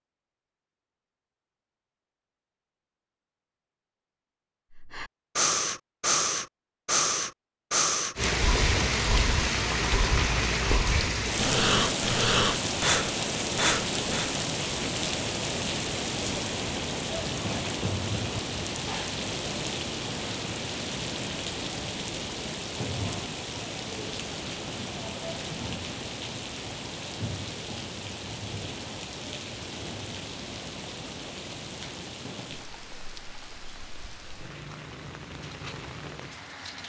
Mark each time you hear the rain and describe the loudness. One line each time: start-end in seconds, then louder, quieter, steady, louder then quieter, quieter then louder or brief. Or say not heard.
8.2-36.8 quieter.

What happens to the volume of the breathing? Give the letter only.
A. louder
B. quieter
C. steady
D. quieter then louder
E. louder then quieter
D.